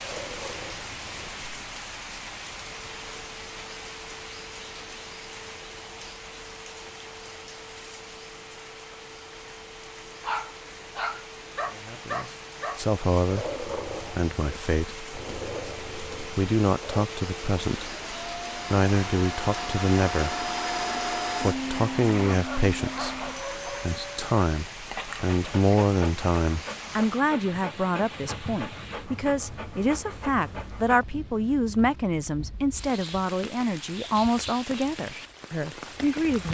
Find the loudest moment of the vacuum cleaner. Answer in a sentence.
The loudest moment of the vacuum cleaner is at 21 seconds.